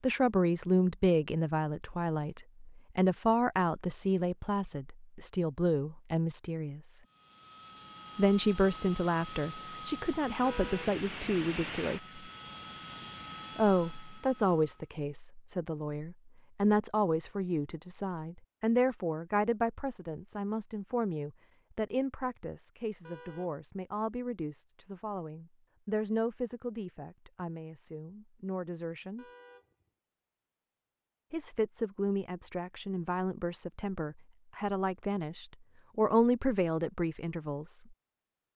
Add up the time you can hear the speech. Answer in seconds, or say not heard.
33 s.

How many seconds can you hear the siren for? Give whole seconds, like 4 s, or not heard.
not heard.